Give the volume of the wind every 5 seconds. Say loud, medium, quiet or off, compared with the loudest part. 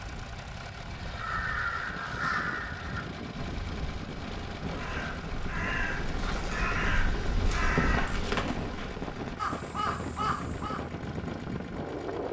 medium, loud, loud.